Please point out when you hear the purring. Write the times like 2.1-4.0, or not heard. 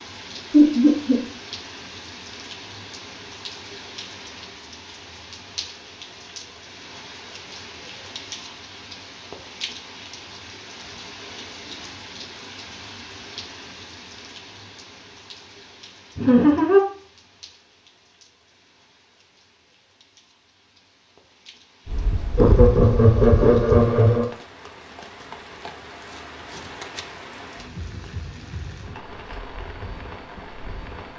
21.9-24.2.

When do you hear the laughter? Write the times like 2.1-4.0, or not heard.
0.5-1.2, 16.1-16.8, 22.4-24.2.